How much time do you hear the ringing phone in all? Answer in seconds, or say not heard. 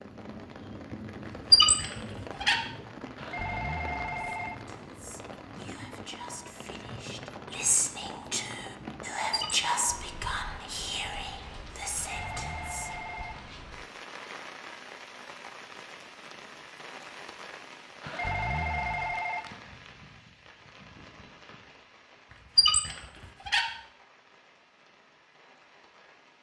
5 s.